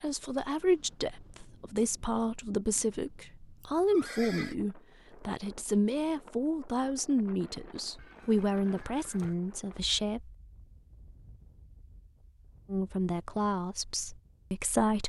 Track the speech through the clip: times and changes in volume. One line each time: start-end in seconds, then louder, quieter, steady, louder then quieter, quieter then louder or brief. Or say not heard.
0.0-10.3 steady
12.7-15.0 brief.